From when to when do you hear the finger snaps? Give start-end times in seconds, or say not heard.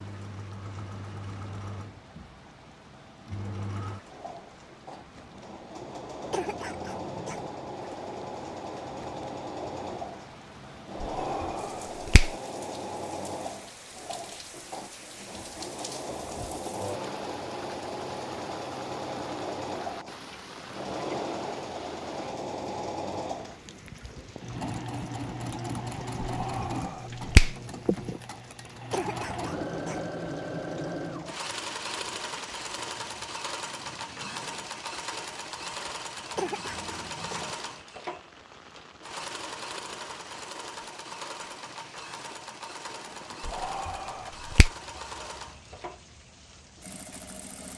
11.0-12.3, 26.2-27.6, 43.5-44.7.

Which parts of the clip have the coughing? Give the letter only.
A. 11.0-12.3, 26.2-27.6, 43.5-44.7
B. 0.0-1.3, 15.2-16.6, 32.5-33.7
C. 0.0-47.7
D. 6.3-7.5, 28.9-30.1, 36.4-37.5
D.